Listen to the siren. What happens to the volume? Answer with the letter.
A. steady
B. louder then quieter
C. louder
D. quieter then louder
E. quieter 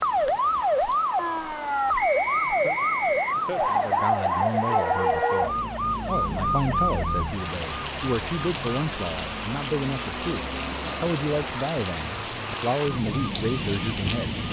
E.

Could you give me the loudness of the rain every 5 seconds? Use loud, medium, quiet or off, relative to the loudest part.
quiet, loud, loud.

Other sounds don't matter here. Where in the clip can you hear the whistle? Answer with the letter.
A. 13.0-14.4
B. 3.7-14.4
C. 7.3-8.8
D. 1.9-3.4
D.